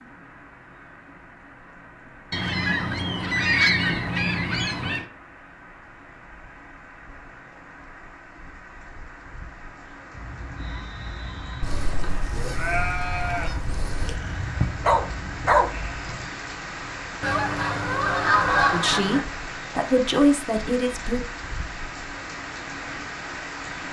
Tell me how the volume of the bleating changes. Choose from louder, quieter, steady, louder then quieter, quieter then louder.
louder then quieter.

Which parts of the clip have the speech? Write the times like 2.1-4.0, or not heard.
18.7-21.2.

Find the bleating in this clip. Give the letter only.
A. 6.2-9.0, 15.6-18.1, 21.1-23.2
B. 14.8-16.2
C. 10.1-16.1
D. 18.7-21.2
C.